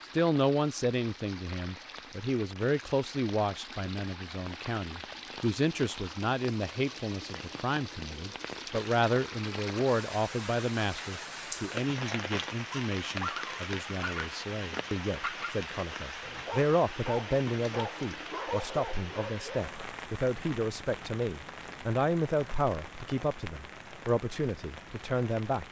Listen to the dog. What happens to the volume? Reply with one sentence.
The loudness of the dog stays about the same.